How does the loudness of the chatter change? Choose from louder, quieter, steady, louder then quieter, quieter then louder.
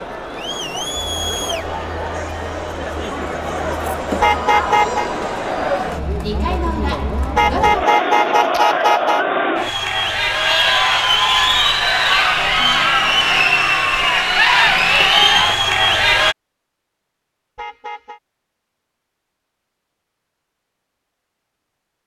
louder.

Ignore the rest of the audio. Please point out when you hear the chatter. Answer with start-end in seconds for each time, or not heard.
0.0-16.4.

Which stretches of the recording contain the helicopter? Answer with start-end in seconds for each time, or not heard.
not heard.